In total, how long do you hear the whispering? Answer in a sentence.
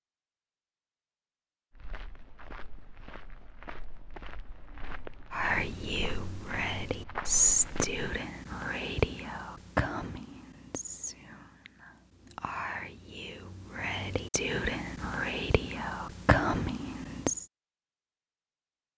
You can hear the whispering for 12 seconds altogether.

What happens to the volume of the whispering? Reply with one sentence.
The loudness of the whispering goes down, then up.